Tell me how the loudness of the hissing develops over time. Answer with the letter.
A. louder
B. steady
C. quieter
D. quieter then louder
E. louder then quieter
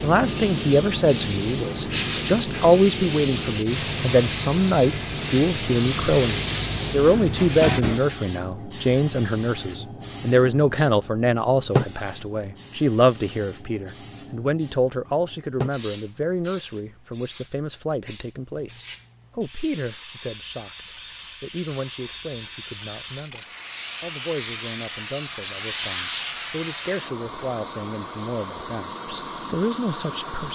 D.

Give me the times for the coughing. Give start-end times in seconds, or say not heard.
not heard.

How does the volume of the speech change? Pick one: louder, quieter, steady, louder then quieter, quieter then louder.
quieter.